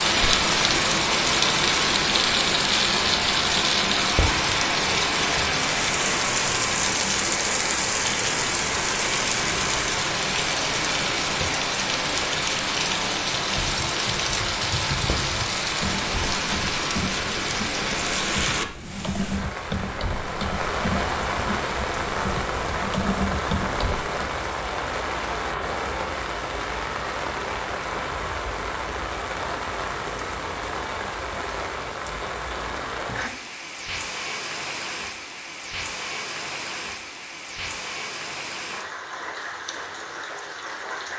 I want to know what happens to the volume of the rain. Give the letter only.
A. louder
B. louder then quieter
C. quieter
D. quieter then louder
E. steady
C.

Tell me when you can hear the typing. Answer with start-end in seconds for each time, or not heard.
13.4-24.4.